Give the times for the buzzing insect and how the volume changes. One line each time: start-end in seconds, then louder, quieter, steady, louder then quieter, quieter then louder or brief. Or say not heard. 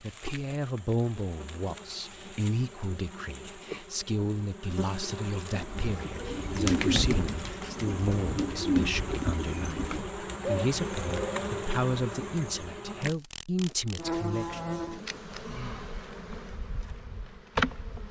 0.0-18.0 louder.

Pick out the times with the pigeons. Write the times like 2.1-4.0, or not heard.
5.5-11.6.